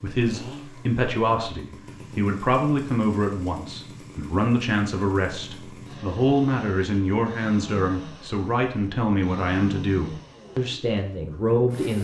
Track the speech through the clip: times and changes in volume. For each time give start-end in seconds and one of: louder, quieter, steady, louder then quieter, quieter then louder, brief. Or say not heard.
0.0-11.9 steady.